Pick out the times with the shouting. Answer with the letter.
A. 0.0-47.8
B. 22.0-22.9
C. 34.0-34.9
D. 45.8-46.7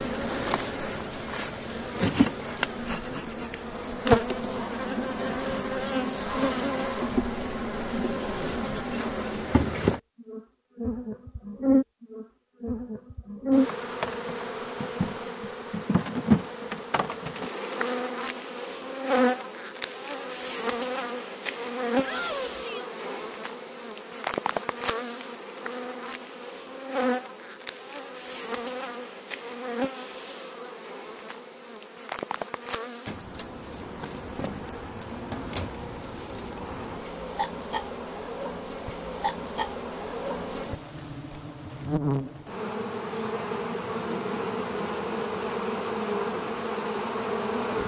B.